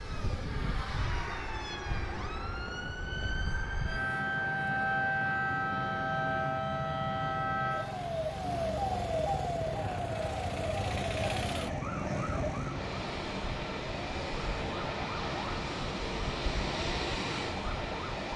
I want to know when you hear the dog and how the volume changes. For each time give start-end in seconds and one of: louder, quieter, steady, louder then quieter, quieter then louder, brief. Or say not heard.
not heard.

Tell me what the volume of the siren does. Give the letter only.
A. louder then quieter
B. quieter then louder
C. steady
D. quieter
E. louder
A.